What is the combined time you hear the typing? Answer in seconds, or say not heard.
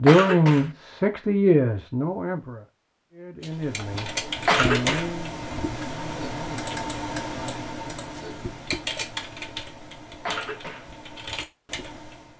9 s.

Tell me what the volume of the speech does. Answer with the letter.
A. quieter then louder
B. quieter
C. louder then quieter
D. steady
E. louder
B.